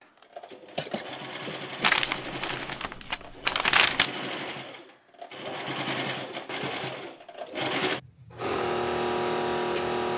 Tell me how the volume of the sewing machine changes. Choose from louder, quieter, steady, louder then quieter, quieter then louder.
louder.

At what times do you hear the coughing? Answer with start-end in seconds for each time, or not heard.
0.8-1.9.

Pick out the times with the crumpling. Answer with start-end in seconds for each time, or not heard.
1.8-4.1.